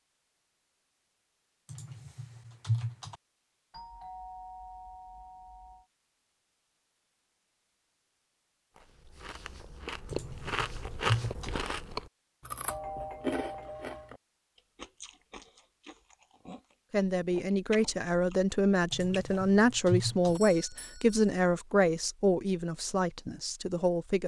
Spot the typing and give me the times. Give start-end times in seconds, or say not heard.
1.7-3.1, 10.1-11.6, 18.9-20.4.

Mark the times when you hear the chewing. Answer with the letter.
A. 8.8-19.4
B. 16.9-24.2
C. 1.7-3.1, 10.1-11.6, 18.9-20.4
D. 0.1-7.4
A.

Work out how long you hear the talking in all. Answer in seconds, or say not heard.
7 s.